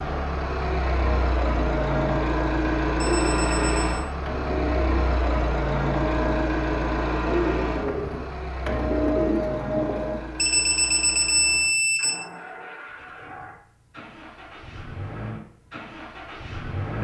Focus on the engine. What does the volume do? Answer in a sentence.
The volume of the engine goes down.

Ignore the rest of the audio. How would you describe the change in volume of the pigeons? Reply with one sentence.
The volume of the pigeons goes up.